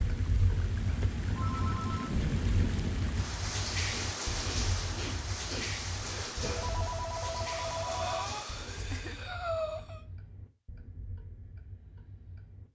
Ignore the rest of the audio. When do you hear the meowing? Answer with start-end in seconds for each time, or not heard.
not heard.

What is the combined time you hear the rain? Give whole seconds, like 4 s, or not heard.
9 s.